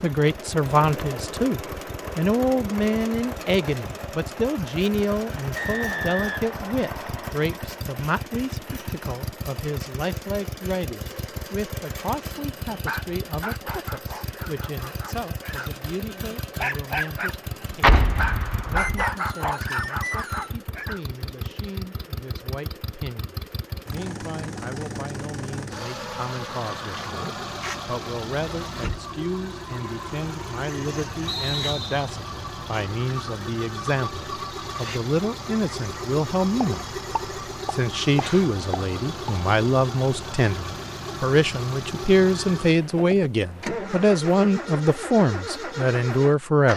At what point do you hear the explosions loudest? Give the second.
18 s.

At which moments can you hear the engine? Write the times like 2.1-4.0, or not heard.
0.0-46.7.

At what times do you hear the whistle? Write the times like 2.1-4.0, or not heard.
5.5-7.3, 18.8-20.6, 31.2-32.1.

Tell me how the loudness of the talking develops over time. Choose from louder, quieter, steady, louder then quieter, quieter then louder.
quieter then louder.